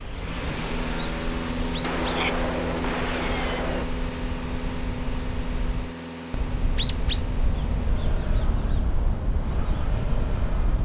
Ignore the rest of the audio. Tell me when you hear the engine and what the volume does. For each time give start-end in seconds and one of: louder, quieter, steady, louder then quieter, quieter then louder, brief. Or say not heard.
0.0-10.7 quieter.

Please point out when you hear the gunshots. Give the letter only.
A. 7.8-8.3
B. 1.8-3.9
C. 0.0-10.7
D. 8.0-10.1
B.